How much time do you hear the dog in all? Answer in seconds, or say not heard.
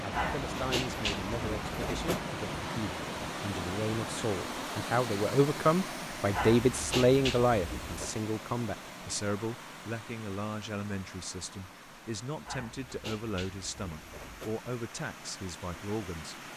6 s.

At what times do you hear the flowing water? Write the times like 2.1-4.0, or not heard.
0.0-16.5.